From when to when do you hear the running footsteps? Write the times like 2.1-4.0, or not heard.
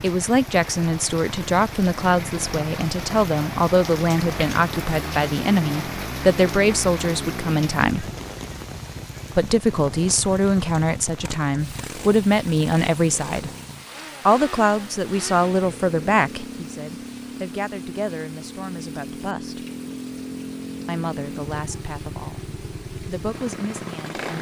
not heard.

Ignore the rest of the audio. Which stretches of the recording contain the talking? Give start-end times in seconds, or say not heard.
0.0-8.1, 9.3-13.5, 14.2-19.6, 20.9-24.3.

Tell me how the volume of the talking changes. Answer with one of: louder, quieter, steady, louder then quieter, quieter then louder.
quieter.